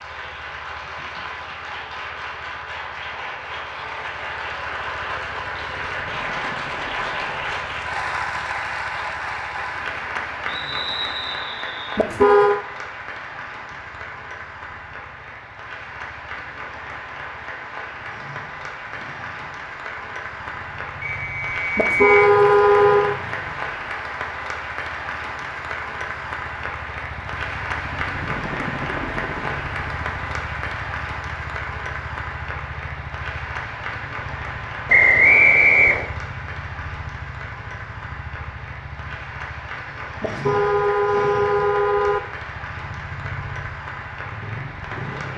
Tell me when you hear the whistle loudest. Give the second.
35 s.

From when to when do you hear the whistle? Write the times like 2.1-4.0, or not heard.
10.4-12.0, 21.0-22.3, 34.9-36.1.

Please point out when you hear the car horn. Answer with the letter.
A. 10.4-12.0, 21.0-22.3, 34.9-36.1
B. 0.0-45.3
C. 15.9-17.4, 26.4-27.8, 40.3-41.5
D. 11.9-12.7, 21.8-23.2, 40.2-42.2
D.